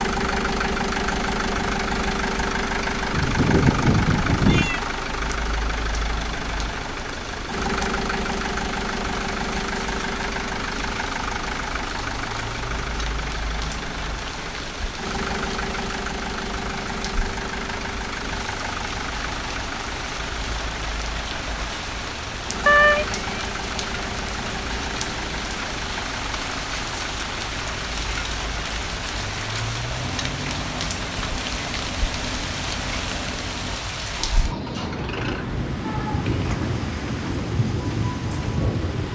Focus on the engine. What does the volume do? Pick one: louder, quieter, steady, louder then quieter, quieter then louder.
quieter.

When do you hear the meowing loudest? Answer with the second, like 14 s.
23 s.